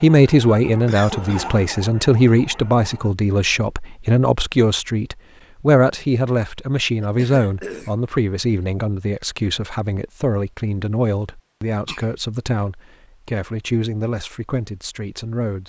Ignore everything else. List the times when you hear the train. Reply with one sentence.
The train can't be heard in this clip.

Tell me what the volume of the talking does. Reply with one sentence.
The loudness of the talking goes down.